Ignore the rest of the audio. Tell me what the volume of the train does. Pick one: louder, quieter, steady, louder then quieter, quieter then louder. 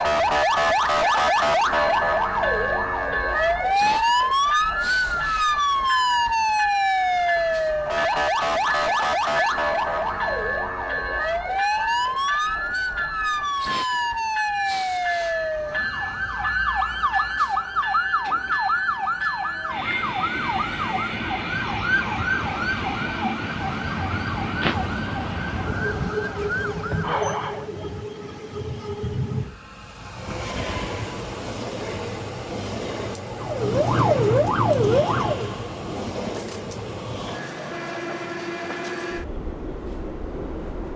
steady.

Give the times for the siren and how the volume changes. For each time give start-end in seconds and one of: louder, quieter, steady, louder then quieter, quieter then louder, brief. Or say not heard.
0.0-27.7 quieter
33.4-35.5 brief.